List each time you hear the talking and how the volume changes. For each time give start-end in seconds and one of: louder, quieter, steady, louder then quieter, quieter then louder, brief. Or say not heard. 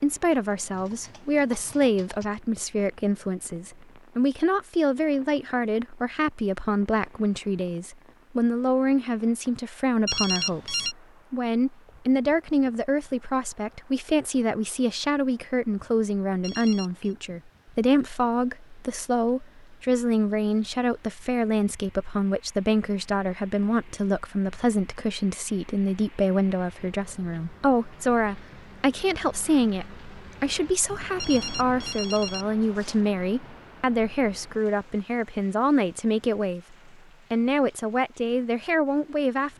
0.0-39.5 steady.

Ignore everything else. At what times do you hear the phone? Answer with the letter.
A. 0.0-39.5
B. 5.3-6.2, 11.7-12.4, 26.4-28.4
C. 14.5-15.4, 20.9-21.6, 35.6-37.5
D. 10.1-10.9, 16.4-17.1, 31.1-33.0
D.